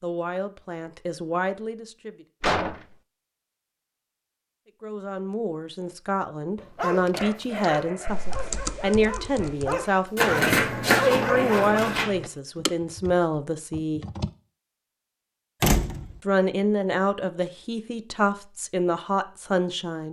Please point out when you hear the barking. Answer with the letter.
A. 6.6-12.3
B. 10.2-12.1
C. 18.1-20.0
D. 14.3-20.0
A.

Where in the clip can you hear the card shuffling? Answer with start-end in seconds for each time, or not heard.
10.2-12.1.